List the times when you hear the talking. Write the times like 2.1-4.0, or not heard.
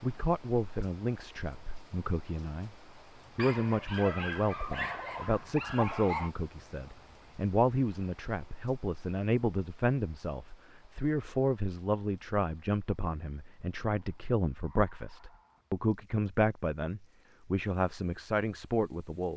0.0-2.8, 3.4-19.3.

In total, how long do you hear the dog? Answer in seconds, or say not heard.
5 s.